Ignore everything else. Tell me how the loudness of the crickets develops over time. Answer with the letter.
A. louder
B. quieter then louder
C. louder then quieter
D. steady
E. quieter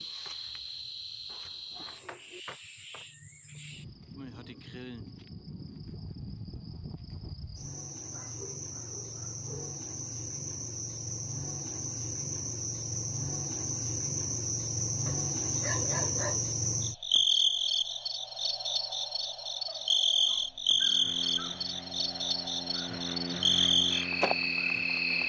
A.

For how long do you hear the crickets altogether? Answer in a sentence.
You can hear the crickets for 25 seconds altogether.